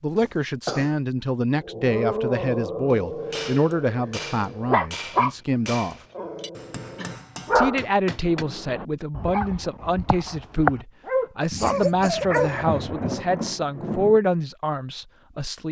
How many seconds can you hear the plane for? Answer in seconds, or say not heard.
not heard.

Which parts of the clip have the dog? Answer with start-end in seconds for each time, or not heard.
1.6-5.3, 6.2-12.5.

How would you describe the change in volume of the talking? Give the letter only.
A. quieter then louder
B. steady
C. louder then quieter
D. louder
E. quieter
B.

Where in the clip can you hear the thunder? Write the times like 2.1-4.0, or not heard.
11.5-14.2.